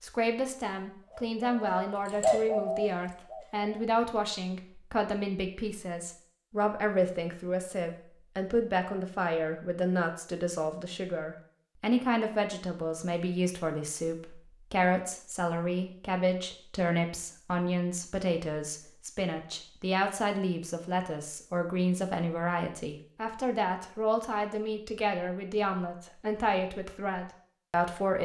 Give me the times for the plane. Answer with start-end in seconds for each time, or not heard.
not heard.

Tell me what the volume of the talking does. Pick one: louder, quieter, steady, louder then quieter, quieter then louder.
steady.